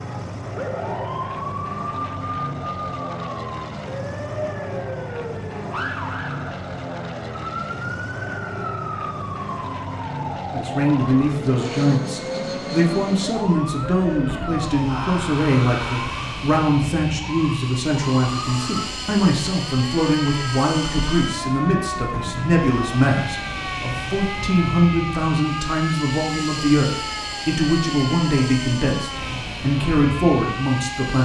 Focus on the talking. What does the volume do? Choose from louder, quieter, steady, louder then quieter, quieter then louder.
steady.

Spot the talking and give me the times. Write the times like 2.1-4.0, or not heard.
10.5-31.2.